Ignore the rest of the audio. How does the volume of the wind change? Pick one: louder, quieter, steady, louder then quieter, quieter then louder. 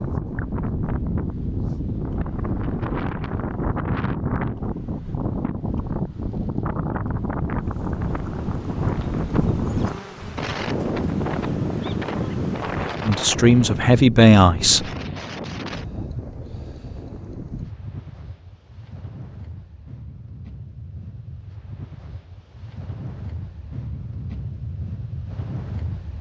quieter.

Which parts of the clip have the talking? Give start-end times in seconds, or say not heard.
13.1-14.8.